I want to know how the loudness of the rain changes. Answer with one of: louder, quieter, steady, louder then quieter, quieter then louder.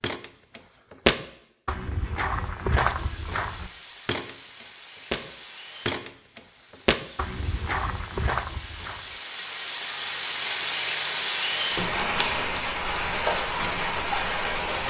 louder.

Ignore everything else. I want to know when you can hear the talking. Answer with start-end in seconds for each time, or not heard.
not heard.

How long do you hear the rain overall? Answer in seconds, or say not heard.
12 s.